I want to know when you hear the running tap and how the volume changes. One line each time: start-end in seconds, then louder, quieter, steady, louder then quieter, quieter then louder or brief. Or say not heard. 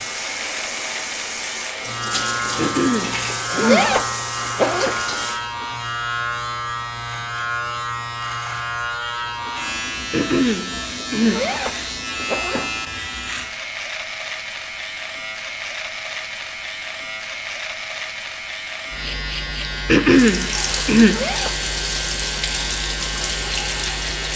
0.0-5.4 steady
20.1-24.3 steady.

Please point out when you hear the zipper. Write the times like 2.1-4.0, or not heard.
3.3-5.2, 11.2-12.7, 21.0-21.6.